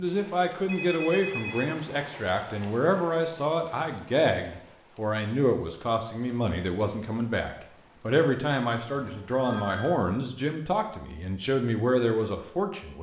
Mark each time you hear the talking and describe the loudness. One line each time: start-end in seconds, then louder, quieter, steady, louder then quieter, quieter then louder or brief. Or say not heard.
0.0-12.9 steady.